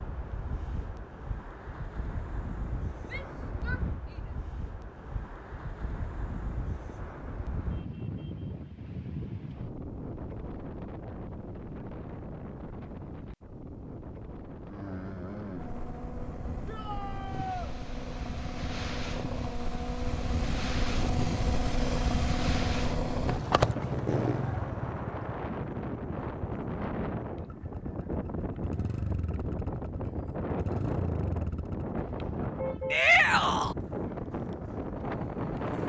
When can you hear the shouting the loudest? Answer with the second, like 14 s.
33 s.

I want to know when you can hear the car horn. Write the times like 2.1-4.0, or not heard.
31.9-33.0.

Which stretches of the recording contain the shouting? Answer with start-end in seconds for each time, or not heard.
3.0-4.3, 16.6-17.8, 32.9-33.8.